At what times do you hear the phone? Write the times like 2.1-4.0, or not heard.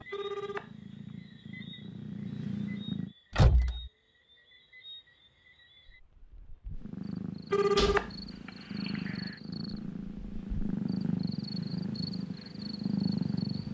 0.1-0.7, 7.5-9.3.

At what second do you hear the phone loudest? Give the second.
8 s.